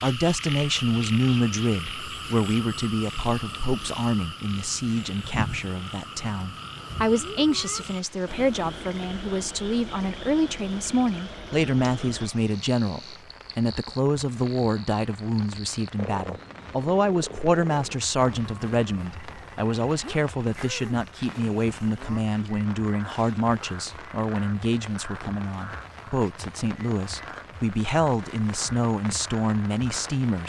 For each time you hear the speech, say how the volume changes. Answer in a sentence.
The speech can be heard from 0.0 to 30.4 s, at a steady volume.